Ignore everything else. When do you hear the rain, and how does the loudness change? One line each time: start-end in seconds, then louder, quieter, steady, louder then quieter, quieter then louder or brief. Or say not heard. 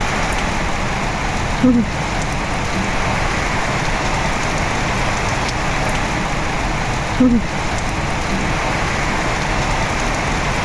0.0-10.5 steady.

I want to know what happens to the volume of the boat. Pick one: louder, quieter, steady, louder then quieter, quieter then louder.
steady.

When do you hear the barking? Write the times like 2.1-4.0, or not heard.
not heard.